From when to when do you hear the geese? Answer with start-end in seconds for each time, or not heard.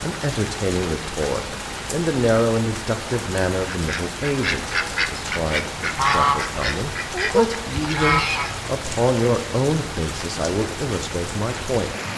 3.7-8.6.